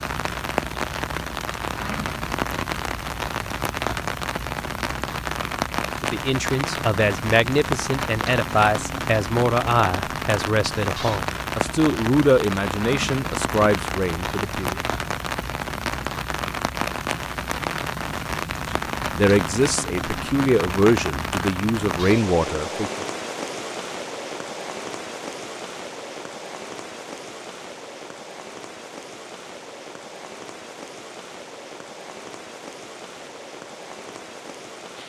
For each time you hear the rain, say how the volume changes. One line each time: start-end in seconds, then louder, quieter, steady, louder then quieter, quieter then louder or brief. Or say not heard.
0.0-35.0 quieter.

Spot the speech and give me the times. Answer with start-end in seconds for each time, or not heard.
6.0-14.8, 19.1-23.1.